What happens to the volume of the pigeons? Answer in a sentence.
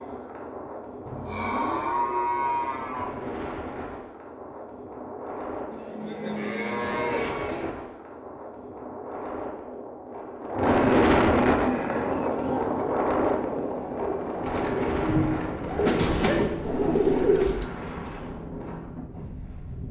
The volume of the pigeons goes up.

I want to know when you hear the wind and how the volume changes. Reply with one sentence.
The wind can be heard from 0.0 to 19.8 s, getting louder then quieter.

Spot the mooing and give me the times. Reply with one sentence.
The mooing can be heard from 1.1 to 3.0 s, from 5.7 to 7.7 s, from 10.6 to 12.7 s and from 15.8 to 17.7 s.